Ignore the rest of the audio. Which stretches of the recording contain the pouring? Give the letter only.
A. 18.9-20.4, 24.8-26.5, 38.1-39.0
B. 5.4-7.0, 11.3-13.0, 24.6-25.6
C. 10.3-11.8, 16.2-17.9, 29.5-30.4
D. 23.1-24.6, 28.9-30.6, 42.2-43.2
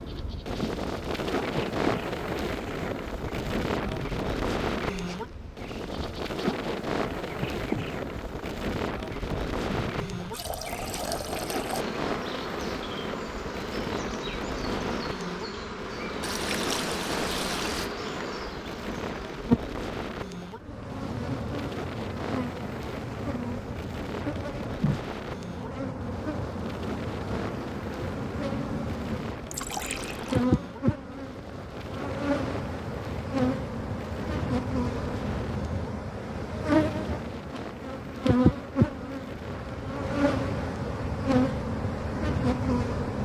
C.